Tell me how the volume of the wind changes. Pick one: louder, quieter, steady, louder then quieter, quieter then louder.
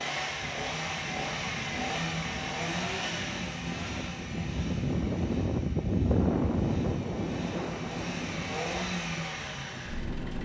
louder then quieter.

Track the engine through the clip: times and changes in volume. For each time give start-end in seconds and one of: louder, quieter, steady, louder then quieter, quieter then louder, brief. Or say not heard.
0.0-10.4 quieter then louder.